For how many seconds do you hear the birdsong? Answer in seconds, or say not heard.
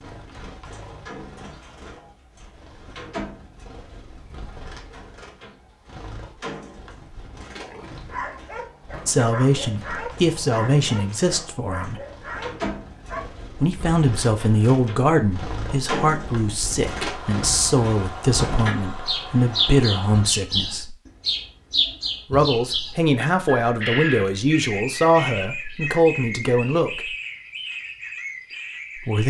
29 s.